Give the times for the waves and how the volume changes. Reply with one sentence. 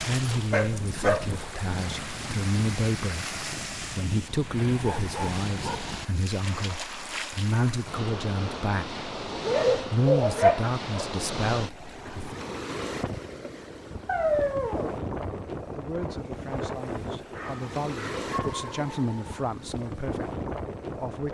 You can hear the waves from 0.0 to 21.2 s, at a steady volume.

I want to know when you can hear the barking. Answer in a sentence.
The barking can be heard from 0.3 to 1.4 s, from 4.8 to 5.9 s, from 9.3 to 11.1 s, from 14.1 to 15.0 s and from 17.3 to 19.2 s.